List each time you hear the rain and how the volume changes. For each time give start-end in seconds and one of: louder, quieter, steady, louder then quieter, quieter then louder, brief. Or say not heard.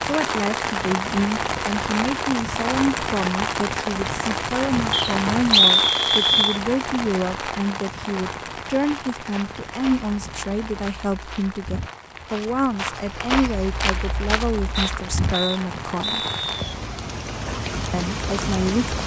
0.0-19.0 quieter then louder.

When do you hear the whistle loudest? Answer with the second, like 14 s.
6 s.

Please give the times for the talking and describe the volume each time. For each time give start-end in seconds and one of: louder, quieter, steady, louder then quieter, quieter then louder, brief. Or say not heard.
0.0-16.2 steady
17.9-18.9 brief.